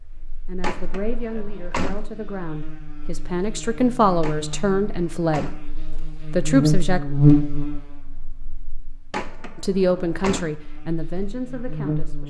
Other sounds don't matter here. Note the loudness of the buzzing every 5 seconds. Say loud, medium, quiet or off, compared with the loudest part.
quiet, loud, medium.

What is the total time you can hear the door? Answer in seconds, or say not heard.
4 s.